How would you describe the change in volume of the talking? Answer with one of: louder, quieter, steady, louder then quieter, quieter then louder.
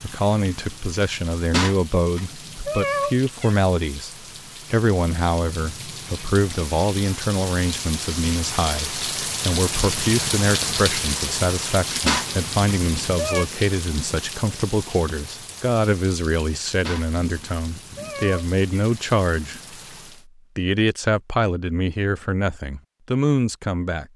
steady.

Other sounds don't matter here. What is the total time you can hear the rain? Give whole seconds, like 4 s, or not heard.
20 s.